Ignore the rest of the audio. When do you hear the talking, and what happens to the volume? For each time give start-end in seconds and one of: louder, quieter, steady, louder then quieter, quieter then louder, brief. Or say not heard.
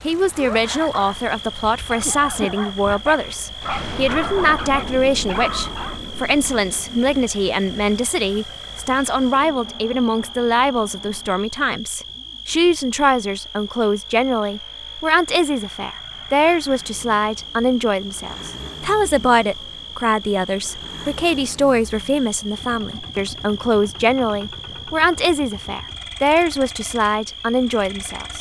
0.0-28.3 steady.